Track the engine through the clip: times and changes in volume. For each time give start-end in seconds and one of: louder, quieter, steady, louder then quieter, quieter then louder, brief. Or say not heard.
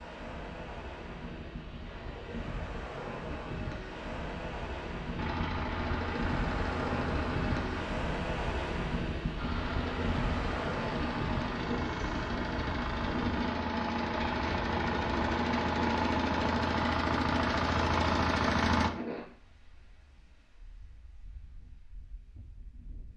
5.2-7.8 brief
9.3-18.9 louder.